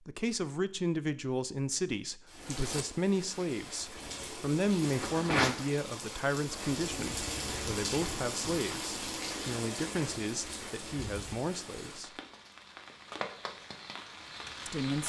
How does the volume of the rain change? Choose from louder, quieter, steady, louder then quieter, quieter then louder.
louder then quieter.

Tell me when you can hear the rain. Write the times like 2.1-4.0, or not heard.
2.3-15.0.